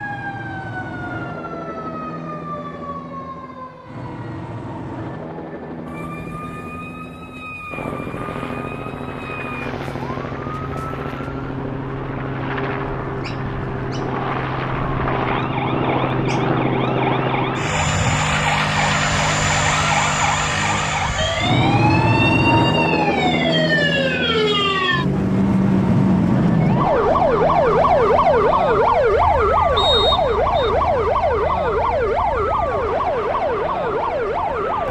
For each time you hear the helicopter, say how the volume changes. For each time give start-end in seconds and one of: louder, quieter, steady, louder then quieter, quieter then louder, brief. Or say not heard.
0.0-34.8 louder then quieter.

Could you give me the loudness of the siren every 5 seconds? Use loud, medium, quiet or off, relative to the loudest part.
quiet, quiet, quiet, medium, medium, loud, loud.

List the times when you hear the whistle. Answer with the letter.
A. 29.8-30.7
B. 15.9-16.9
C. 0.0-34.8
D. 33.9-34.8
A.